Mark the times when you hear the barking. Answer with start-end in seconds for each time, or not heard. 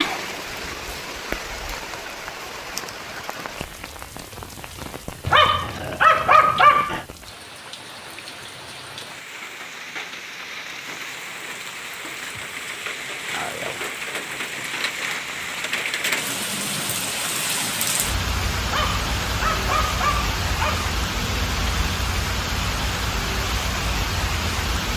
5.2-7.0, 18.6-20.9.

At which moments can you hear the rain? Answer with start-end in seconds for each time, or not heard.
0.0-24.9.